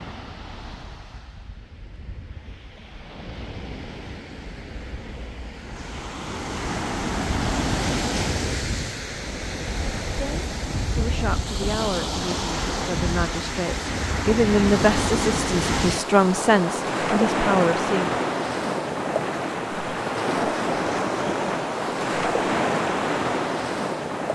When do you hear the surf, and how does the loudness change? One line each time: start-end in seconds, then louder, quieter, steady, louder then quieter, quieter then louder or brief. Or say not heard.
0.0-24.2 louder.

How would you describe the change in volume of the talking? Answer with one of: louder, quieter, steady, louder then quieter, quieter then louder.
louder.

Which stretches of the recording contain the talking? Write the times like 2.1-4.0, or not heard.
10.2-18.1.